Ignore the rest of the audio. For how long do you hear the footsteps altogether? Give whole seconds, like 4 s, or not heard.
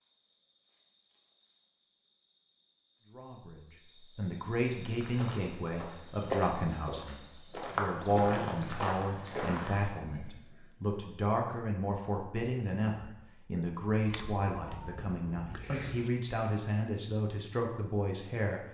5 s.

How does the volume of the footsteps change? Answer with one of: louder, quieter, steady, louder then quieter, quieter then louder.
louder.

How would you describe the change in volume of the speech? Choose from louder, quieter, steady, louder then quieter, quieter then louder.
steady.